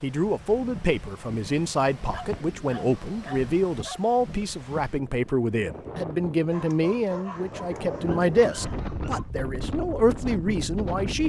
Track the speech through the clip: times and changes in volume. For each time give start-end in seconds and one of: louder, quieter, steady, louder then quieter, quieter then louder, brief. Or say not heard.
0.0-11.2 steady.